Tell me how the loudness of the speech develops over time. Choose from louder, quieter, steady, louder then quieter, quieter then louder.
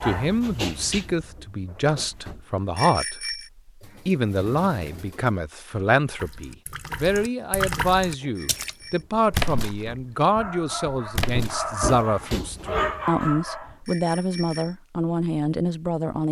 steady.